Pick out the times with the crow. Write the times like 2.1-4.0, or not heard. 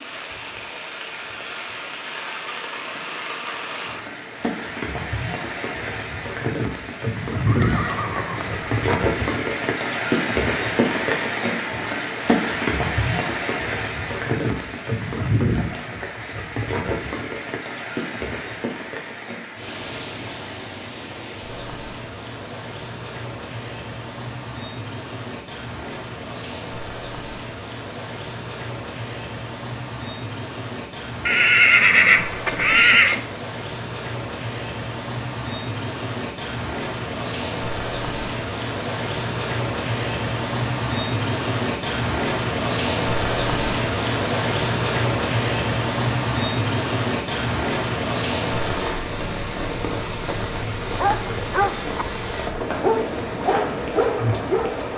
not heard.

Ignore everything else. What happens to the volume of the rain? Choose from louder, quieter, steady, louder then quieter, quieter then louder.
quieter then louder.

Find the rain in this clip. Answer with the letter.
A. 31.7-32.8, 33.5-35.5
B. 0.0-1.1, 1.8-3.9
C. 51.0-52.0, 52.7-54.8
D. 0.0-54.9
D.